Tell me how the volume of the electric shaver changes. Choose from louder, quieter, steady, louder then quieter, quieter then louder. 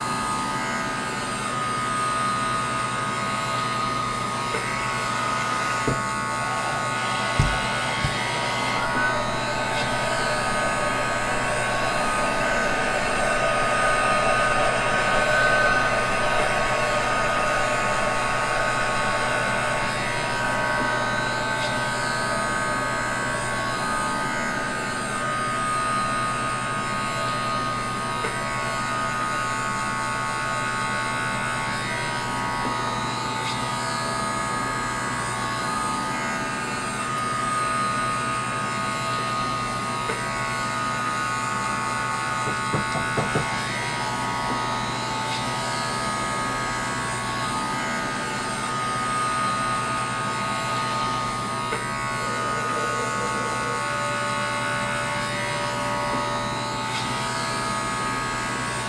steady.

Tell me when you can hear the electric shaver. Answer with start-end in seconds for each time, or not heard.
0.0-58.8.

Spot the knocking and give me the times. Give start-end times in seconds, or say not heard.
7.3-8.1, 42.5-43.5.